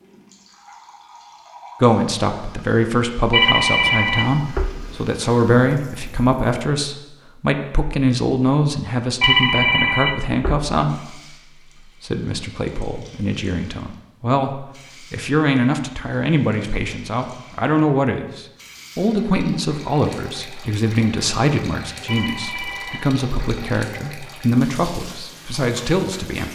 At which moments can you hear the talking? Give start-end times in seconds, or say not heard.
1.8-11.2, 12.0-26.5.